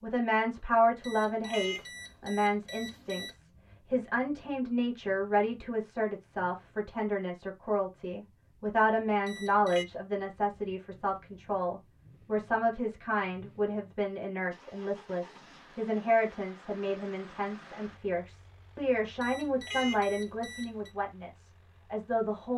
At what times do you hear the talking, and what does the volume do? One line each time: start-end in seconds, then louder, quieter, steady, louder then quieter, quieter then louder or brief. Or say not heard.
0.0-22.5 steady.